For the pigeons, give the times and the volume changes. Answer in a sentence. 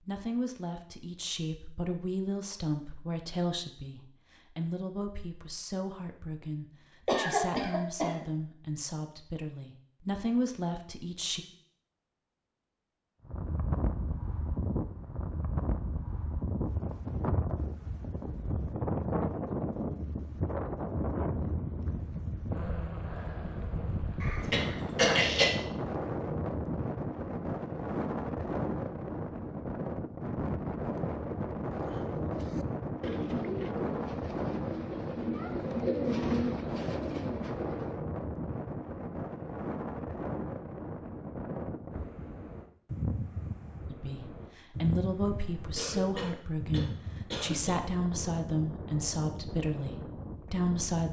You can hear the pigeons from 31.8 to 38.0 s, getting louder then quieter.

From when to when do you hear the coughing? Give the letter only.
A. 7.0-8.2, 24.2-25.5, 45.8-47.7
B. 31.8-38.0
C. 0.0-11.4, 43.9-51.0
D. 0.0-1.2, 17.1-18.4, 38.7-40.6
A.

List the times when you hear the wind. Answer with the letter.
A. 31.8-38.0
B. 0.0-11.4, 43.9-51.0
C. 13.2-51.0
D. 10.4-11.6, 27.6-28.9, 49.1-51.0
C.